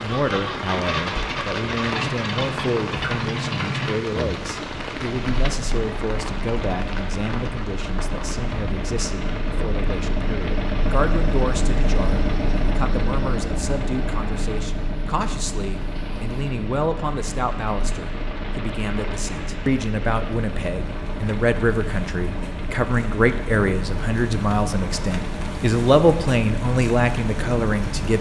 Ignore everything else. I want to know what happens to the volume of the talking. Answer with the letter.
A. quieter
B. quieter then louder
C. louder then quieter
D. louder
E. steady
D.